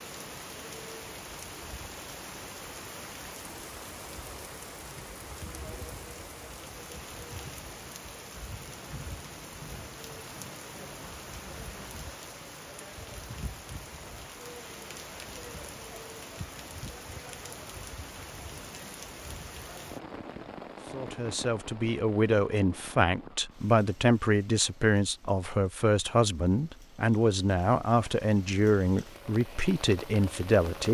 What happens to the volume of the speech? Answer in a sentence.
The loudness of the speech stays about the same.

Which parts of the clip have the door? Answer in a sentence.
You can't hear the door here.